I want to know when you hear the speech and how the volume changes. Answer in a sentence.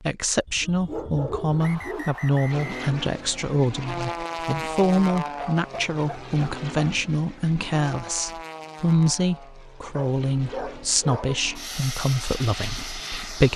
You can hear the speech from 0.0 to 13.5 s, at a steady volume.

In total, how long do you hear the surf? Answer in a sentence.
You can't hear the surf here.